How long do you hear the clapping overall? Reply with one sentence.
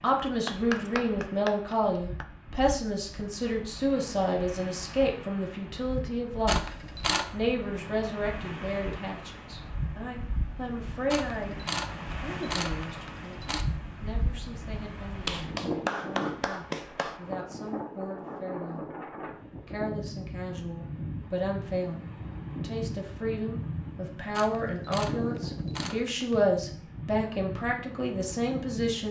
The clapping can be heard for 4 seconds in total.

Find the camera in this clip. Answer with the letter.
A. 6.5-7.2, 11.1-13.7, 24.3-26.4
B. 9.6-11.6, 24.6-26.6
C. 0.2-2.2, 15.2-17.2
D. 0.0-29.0
A.